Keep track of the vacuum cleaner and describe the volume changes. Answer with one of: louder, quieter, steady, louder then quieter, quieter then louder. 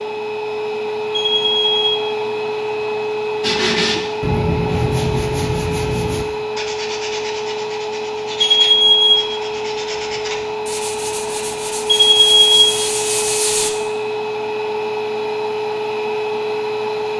steady.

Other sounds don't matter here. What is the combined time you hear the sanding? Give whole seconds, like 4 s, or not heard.
10 s.